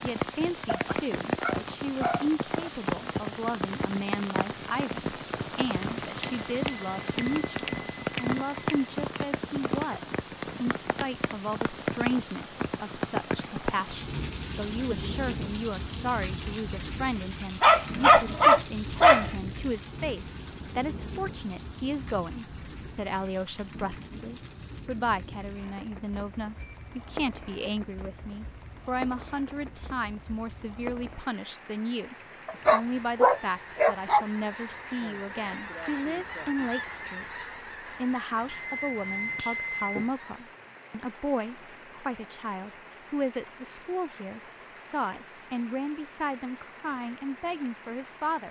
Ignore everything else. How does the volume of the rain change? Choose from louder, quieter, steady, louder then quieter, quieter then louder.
quieter.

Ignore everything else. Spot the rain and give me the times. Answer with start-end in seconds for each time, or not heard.
0.0-48.4.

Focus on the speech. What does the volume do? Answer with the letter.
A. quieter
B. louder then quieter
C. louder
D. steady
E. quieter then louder
D.